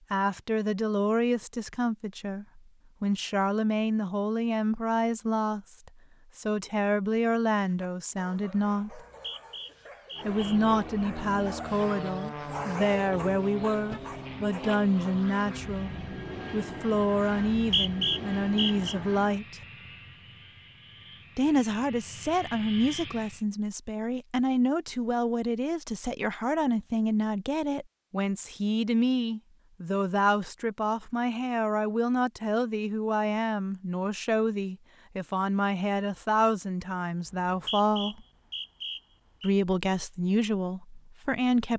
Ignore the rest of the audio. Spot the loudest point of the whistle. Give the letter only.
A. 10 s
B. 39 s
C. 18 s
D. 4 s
C.